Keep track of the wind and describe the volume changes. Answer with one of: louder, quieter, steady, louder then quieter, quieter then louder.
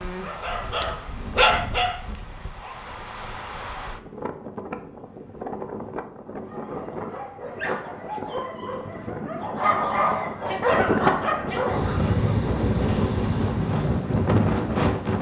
louder.